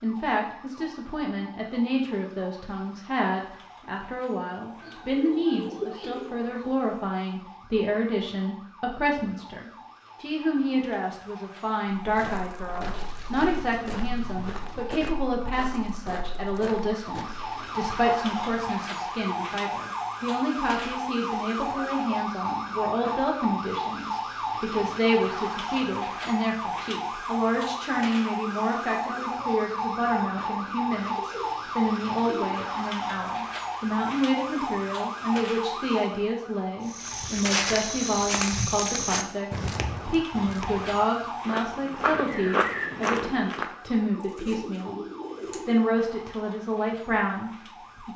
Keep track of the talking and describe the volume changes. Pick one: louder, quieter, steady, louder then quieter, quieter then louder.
steady.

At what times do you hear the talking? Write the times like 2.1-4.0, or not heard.
0.0-48.1.